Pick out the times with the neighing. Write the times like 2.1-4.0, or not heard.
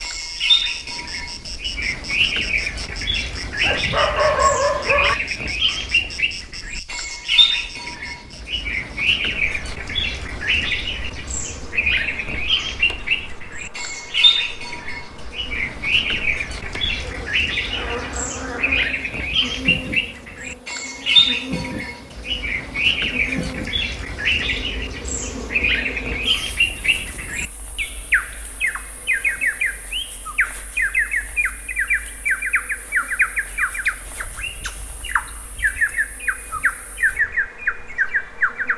not heard.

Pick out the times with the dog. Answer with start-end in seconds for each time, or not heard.
3.6-5.2.